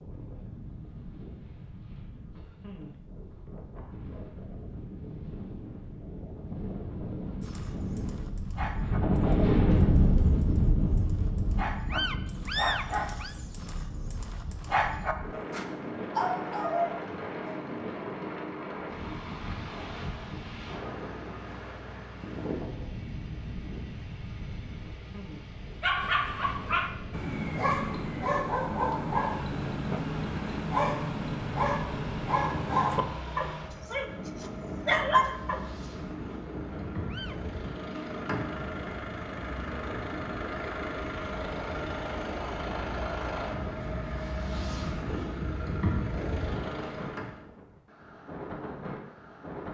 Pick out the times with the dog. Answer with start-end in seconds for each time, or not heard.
7.4-17.6, 25.8-35.6.